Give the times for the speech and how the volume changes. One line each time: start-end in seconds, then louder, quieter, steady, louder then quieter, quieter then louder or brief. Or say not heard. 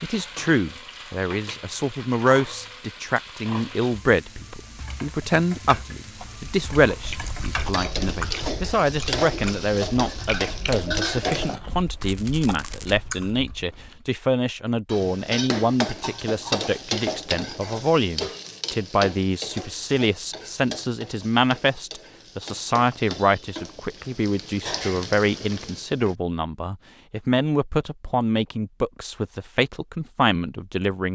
0.0-31.1 steady.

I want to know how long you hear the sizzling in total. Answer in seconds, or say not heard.
23 s.